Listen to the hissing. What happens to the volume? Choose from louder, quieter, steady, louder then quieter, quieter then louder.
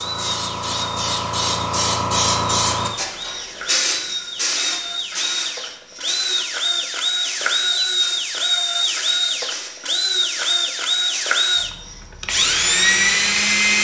quieter.